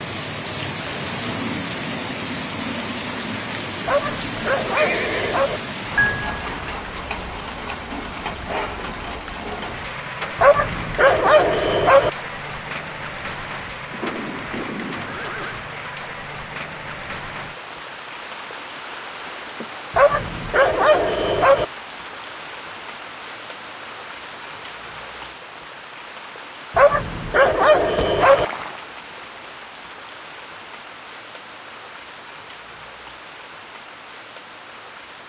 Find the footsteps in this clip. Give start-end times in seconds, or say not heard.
not heard.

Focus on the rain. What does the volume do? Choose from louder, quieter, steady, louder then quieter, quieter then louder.
quieter.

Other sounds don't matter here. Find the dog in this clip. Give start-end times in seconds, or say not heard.
3.9-5.6, 10.3-12.1, 19.9-21.6, 26.8-28.4.